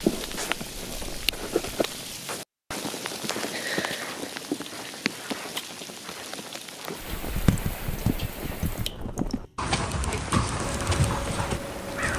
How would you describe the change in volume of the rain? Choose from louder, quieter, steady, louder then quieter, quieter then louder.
quieter.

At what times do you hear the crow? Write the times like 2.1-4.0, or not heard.
10.6-12.1.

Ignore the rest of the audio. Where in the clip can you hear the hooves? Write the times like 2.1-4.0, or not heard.
0.1-1.9, 7.0-12.1.